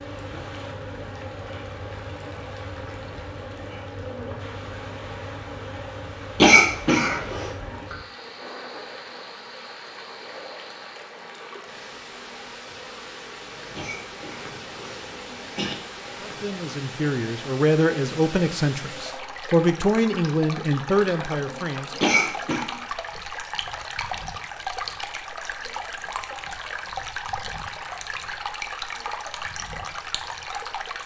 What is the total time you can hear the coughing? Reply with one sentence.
You can hear the coughing for 4 seconds altogether.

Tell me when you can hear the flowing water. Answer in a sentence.
The flowing water can be heard from 0.0 to 31.0 s.